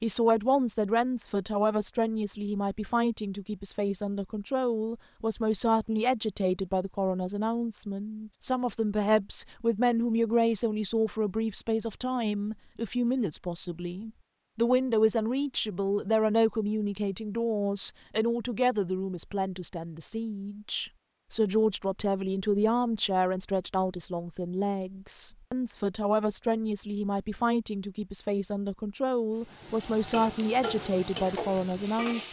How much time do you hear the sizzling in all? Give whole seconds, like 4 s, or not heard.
3 s.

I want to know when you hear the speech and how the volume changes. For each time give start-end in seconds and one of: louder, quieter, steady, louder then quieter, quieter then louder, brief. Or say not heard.
0.0-32.2 steady.